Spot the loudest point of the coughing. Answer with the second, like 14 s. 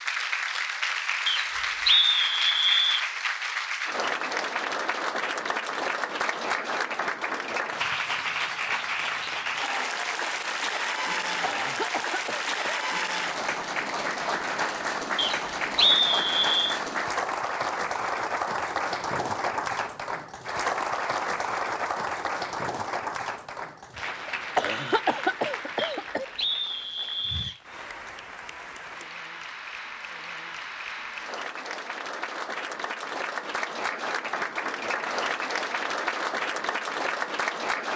25 s.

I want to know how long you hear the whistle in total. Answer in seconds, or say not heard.
5 s.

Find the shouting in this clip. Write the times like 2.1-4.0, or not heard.
not heard.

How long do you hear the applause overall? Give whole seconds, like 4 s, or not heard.
38 s.